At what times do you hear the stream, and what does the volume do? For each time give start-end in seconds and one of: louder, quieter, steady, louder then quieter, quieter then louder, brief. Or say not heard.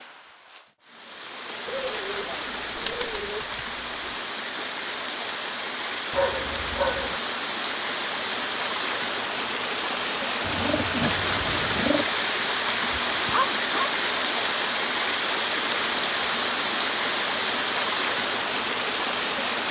0.0-19.6 louder.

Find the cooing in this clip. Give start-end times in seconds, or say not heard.
1.6-4.3, 10.4-12.1.